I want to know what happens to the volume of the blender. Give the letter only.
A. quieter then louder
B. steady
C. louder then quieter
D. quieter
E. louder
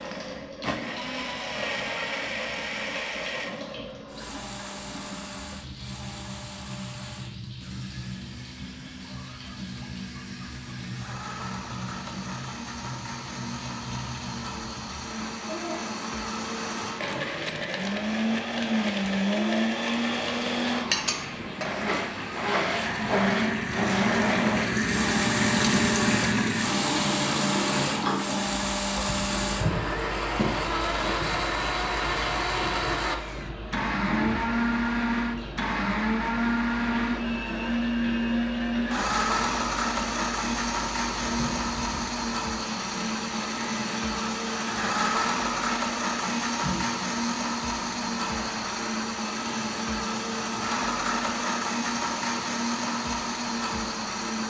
E.